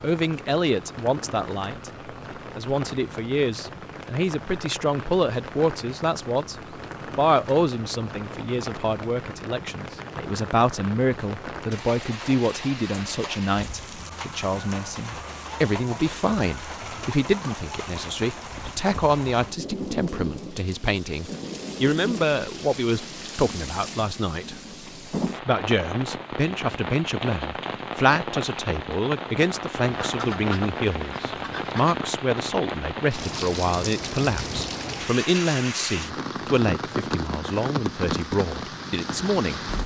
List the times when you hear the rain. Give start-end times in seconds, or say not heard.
0.0-39.8.